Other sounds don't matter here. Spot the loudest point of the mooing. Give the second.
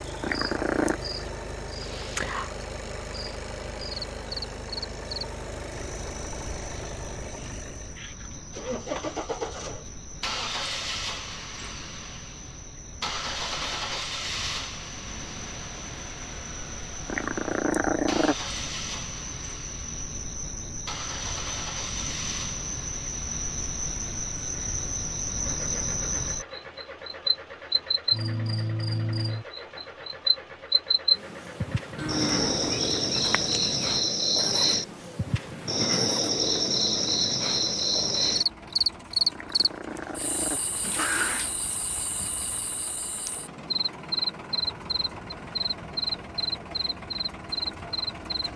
32 s.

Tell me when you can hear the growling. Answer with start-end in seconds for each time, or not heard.
0.2-0.9, 17.1-18.4, 39.3-41.5.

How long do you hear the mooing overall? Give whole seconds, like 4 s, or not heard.
2 s.